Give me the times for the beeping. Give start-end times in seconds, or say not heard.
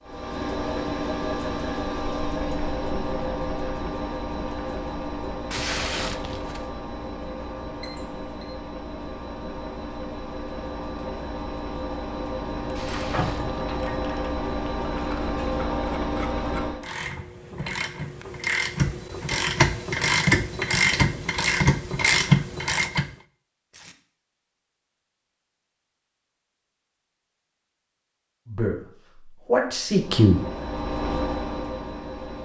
7.8-8.5.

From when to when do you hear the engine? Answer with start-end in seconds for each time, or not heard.
0.0-16.9, 29.9-32.4.